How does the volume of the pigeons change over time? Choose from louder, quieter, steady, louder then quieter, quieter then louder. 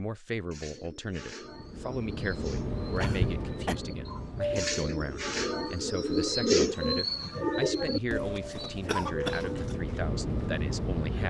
louder then quieter.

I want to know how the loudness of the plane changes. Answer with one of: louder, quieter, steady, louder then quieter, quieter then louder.
quieter then louder.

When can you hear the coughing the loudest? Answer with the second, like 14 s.
9 s.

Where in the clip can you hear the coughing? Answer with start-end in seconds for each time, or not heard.
3.0-3.8, 8.6-9.8.